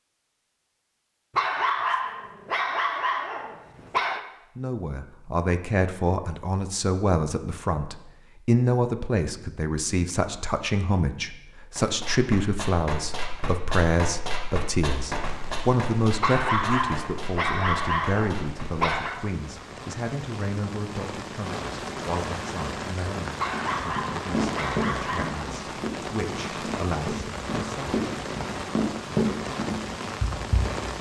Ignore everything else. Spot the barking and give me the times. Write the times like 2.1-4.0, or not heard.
1.4-4.2, 16.2-19.2, 23.4-25.6.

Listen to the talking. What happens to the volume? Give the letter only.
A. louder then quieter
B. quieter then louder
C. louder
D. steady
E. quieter
E.